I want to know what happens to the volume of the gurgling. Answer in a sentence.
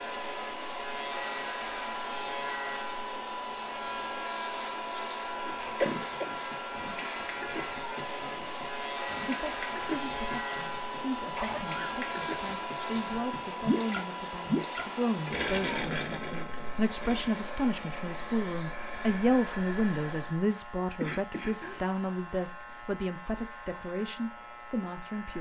The loudness of the gurgling goes up.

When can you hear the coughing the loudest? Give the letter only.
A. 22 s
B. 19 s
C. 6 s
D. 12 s
C.